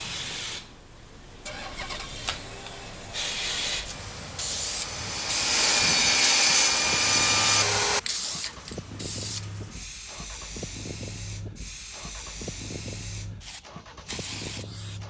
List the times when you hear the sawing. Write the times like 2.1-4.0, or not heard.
3.8-8.0.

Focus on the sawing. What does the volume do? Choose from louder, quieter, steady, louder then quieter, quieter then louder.
louder.